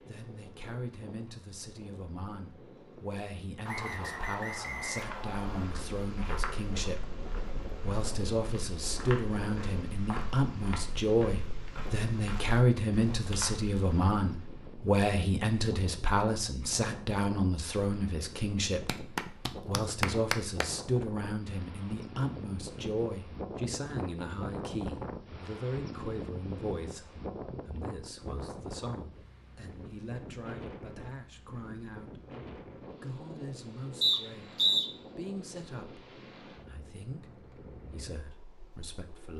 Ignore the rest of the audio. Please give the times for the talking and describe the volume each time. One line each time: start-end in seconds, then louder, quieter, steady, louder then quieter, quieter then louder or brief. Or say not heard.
0.0-39.3 louder then quieter.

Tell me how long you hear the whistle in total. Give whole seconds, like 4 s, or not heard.
3 s.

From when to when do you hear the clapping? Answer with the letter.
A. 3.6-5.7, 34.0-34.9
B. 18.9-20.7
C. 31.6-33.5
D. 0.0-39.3
B.